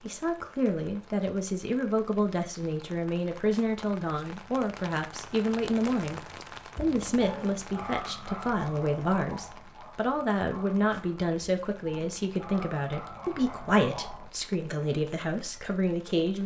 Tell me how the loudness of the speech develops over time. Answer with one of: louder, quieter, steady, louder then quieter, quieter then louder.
steady.